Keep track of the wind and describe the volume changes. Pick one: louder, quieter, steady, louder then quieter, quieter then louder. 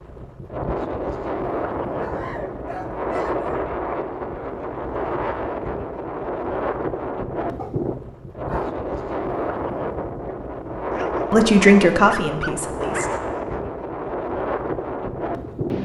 steady.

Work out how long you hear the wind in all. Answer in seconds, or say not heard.
16 s.